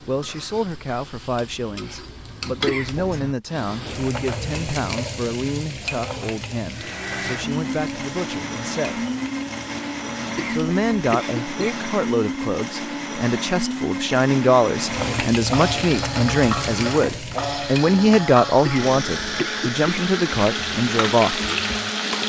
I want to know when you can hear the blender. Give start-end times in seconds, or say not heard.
6.7-22.2.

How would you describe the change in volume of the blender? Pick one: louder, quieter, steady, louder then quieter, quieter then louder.
steady.